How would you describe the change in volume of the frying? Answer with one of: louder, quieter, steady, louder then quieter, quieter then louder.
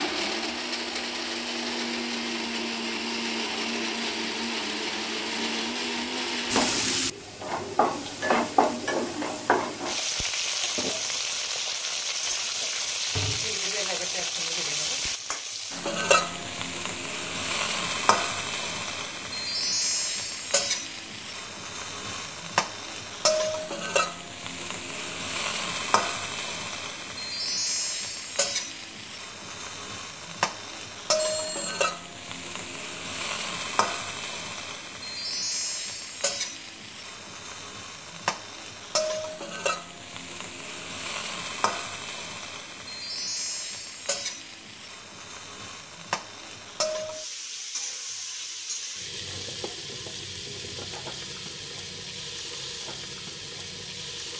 quieter.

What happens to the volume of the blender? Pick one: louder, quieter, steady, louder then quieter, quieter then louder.
steady.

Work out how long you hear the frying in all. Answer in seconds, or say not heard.
48 s.